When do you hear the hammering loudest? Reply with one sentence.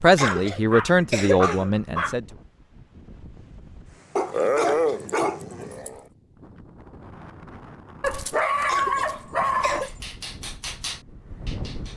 The loudest moment of the hammering is at 11 seconds.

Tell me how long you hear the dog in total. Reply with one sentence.
The dog can be heard for 6 seconds in total.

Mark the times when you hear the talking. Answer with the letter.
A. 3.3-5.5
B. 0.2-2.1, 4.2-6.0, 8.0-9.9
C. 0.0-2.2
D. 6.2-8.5
C.